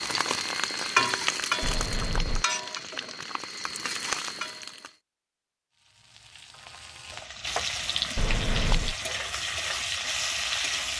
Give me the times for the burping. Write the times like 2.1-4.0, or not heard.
1.6-2.5, 8.2-8.9.